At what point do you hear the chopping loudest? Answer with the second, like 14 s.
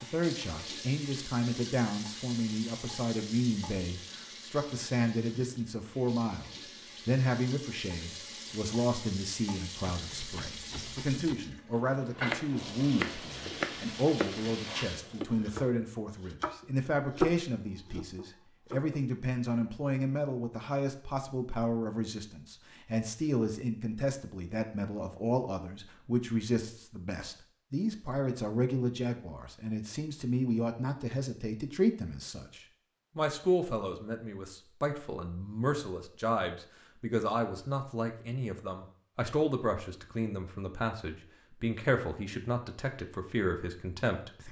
17 s.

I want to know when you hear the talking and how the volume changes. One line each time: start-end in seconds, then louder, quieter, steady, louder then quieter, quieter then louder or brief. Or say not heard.
0.0-44.4 steady.